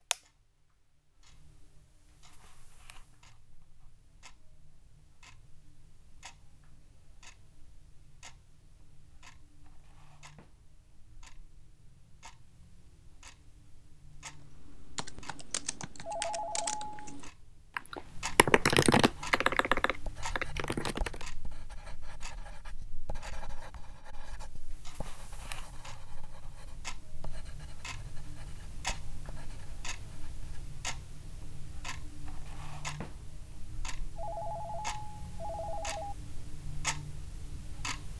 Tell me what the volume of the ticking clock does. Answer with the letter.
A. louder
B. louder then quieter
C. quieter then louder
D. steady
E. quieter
A.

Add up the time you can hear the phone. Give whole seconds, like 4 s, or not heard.
3 s.